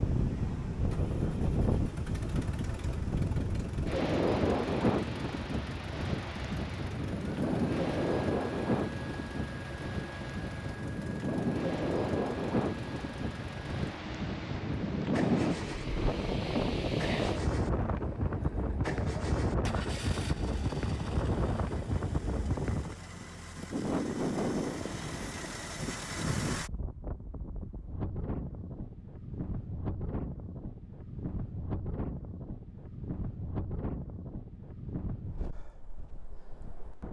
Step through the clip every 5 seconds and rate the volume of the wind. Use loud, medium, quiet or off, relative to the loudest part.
loud, loud, loud, loud, loud, medium, medium, quiet.